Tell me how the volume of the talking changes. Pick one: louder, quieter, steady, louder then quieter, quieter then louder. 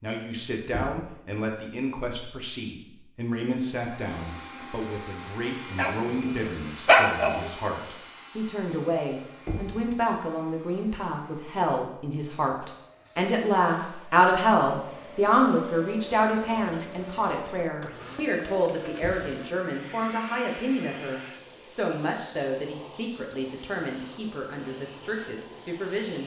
louder then quieter.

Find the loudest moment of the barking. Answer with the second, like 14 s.
7 s.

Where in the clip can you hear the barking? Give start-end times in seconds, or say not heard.
5.8-7.5.